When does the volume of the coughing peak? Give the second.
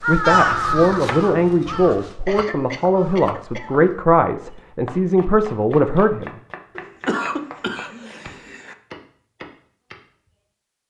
7 s.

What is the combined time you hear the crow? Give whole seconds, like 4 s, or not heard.
4 s.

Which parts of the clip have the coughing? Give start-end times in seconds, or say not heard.
2.2-3.8, 6.8-8.8.